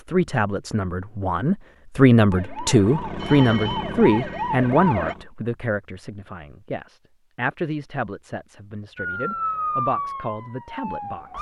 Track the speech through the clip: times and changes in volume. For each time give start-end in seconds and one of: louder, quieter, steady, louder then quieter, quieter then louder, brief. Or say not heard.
0.0-11.3 quieter.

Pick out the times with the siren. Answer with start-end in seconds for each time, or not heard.
2.3-5.2, 8.9-11.3.